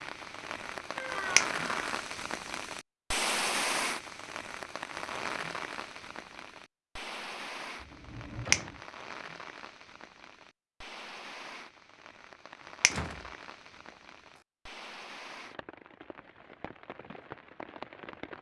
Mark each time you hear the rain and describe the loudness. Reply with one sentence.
You can hear the rain from 0.0 to 18.3 s, getting quieter.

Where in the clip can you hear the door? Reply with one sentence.
The door can be heard from 0.9 to 1.9 s, from 7.8 to 8.8 s and from 12.8 to 14.4 s.